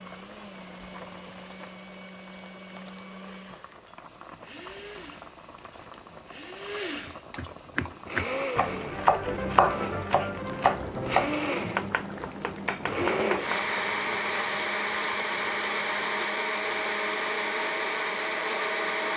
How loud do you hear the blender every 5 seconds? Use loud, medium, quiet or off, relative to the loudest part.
quiet, medium, loud, loud.